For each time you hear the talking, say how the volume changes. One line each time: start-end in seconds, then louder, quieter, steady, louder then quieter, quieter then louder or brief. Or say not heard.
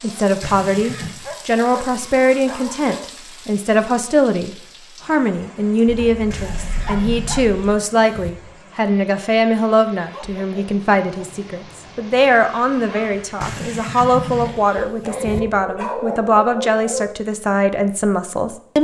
0.0-18.7 steady.